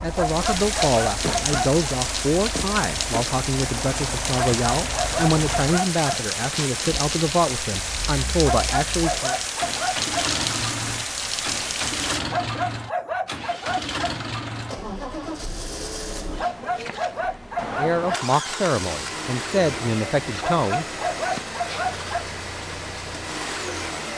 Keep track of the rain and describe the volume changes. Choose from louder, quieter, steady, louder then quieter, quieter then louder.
steady.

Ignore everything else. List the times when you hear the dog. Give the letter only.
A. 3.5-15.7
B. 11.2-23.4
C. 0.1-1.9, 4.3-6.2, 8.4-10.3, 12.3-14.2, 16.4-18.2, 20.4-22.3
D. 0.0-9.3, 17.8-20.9
C.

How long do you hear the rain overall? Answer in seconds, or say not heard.
12 s.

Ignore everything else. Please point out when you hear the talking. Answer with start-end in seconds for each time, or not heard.
0.0-9.3, 17.8-20.9.